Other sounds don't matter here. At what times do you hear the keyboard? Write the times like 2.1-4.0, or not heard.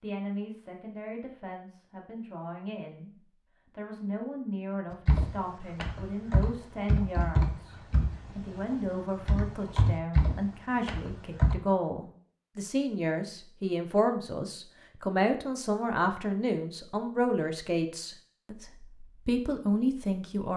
4.9-11.6.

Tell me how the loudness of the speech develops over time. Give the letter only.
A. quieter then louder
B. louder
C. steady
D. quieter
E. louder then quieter
B.